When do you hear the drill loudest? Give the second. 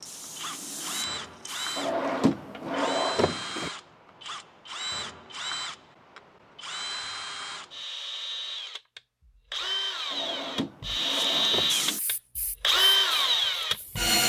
13 s.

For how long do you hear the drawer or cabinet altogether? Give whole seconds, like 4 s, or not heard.
4 s.